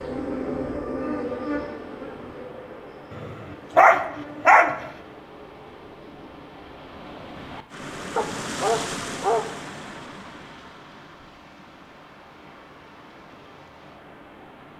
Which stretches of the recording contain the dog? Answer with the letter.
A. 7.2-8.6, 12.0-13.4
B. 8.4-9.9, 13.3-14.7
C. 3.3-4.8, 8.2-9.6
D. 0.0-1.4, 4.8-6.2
C.